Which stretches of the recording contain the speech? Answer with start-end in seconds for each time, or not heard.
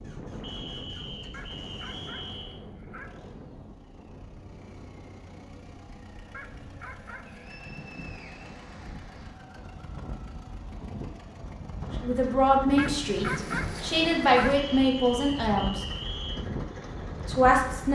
12.0-15.8, 17.2-17.9.